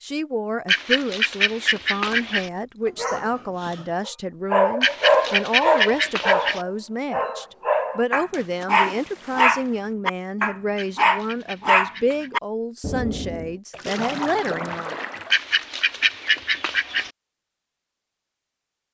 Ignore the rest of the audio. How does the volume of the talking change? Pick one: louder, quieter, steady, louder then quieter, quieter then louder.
steady.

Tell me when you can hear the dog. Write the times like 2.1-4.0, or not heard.
3.0-13.5.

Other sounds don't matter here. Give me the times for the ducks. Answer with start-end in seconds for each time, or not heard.
0.7-2.5, 4.8-6.6, 10.8-12.3, 15.3-17.1.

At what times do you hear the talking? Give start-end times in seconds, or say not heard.
0.0-14.9.